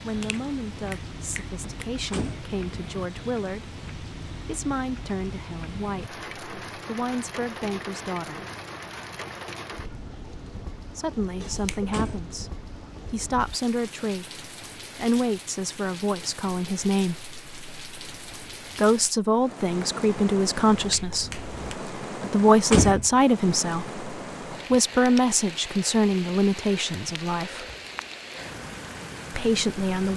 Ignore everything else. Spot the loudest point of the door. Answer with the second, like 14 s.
23 s.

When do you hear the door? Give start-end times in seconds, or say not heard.
1.6-2.5, 11.4-12.3, 22.2-23.1.